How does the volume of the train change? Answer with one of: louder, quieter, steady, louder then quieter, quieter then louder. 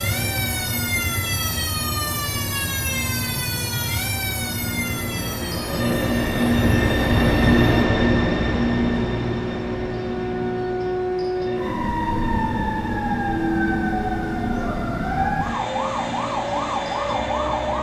louder then quieter.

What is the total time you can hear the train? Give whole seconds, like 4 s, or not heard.
18 s.